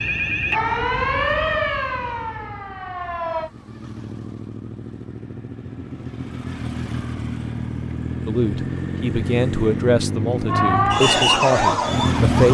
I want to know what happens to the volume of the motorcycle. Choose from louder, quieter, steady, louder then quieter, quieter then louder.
louder.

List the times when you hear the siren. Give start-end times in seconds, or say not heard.
0.0-3.5, 10.4-12.4.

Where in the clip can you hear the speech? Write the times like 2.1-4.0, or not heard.
8.2-12.4.